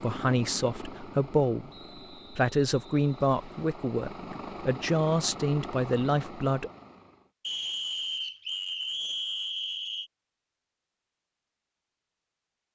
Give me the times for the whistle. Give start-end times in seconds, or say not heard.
1.6-3.7, 7.4-10.1.